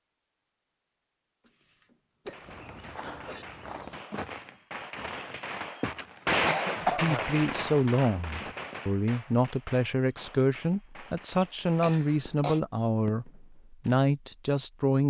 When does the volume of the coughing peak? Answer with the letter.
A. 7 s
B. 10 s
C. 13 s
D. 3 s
A.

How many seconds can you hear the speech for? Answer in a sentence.
The speech can be heard for 8 seconds in total.